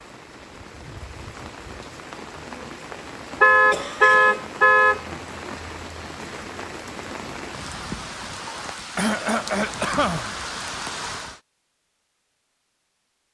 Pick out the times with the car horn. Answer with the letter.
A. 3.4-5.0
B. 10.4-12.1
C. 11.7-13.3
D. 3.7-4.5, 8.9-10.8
A.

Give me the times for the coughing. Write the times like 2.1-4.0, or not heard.
3.7-4.5, 8.9-10.8.